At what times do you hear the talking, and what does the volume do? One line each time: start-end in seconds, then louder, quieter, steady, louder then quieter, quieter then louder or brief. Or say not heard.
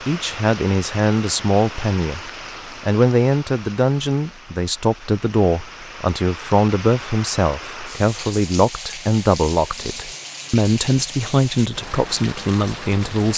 0.1-13.3 steady.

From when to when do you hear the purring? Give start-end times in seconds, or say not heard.
not heard.